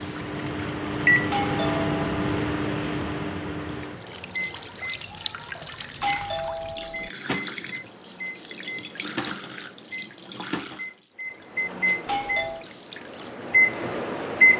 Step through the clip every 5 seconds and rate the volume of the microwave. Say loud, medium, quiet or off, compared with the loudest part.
loud, quiet, loud.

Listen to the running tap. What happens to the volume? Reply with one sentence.
The volume of the running tap goes up, then down.